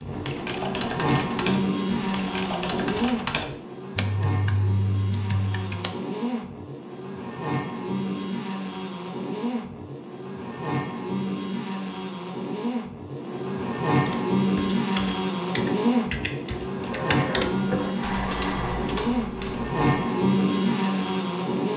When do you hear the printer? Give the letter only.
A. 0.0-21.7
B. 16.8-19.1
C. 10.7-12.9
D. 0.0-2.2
B.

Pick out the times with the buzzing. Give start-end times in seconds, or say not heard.
0.0-21.7.